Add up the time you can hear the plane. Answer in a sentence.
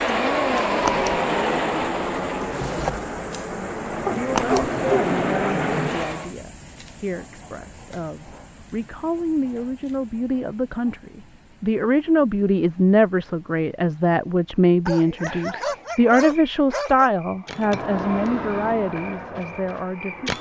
You can hear the plane for 9 seconds altogether.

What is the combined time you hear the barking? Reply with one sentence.
The barking can be heard for 3 seconds in total.